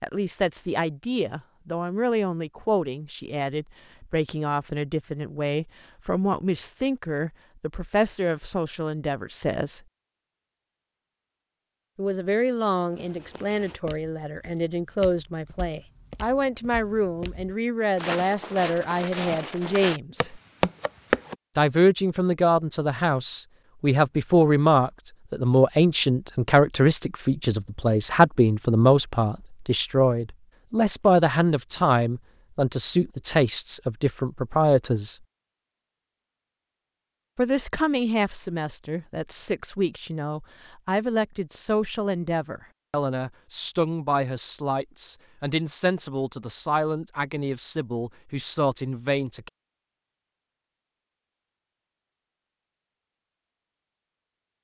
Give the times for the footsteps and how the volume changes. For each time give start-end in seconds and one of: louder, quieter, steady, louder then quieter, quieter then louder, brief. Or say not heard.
12.9-21.4 louder.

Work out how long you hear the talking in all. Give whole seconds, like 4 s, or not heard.
44 s.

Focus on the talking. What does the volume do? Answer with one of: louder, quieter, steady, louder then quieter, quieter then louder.
louder then quieter.